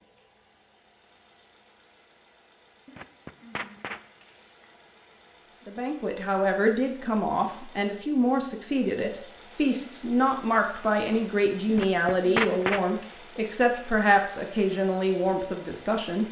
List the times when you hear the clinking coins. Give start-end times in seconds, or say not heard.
2.9-4.5, 11.7-13.2.